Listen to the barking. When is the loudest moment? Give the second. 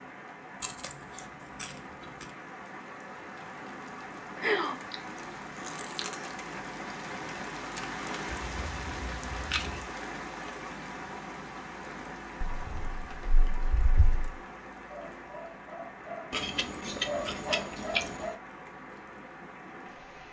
17 s.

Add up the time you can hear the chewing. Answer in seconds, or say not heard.
8 s.